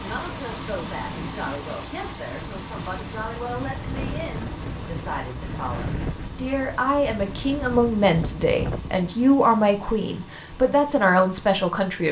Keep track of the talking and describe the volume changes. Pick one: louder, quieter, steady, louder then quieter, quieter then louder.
louder.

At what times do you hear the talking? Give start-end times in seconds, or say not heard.
0.0-12.0.